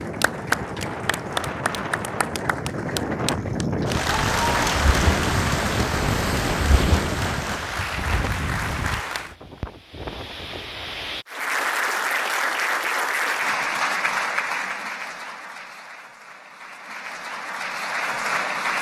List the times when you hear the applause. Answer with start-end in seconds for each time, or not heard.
0.0-9.3, 11.2-18.7.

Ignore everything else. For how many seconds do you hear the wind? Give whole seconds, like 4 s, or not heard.
11 s.